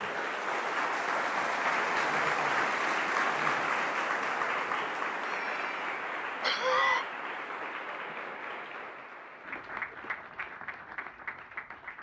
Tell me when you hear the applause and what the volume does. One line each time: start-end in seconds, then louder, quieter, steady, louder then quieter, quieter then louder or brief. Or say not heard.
0.0-11.9 quieter.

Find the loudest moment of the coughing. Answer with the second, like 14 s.
7 s.